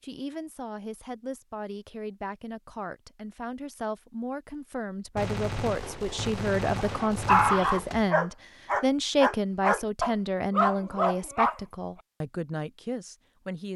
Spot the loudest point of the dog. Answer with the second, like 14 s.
7 s.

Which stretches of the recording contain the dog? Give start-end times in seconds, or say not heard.
6.7-11.6.